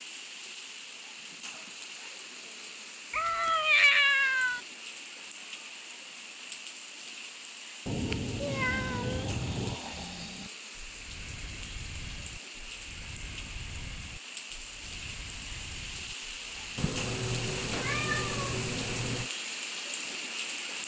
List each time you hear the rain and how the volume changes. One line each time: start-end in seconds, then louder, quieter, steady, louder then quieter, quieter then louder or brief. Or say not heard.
0.0-20.8 louder.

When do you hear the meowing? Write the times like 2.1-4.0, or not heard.
3.1-4.6, 7.8-9.8, 16.8-19.3.